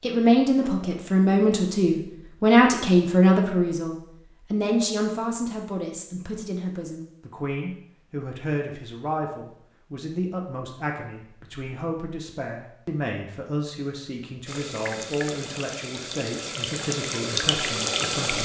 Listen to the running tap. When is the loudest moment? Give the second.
18 s.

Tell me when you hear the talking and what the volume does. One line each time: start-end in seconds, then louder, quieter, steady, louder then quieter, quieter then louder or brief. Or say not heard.
0.0-18.3 quieter.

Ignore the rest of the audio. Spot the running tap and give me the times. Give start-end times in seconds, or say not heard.
14.4-18.3.